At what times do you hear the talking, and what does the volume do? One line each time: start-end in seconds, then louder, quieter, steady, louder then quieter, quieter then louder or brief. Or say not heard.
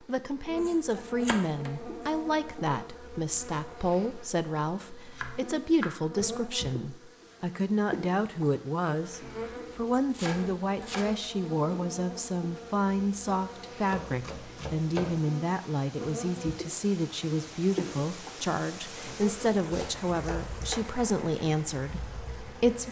0.0-22.8 steady.